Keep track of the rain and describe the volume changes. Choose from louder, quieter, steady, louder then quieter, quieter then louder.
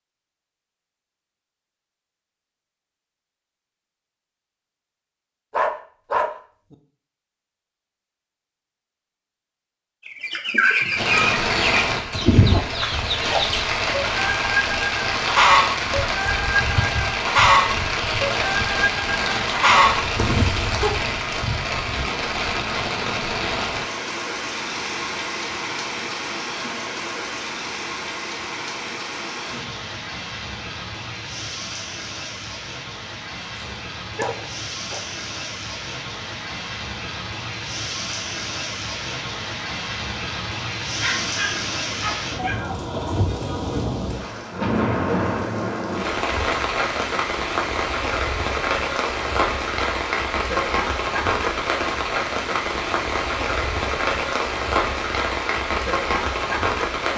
quieter then louder.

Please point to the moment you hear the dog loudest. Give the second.
6 s.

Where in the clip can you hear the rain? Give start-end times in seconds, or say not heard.
10.9-57.1.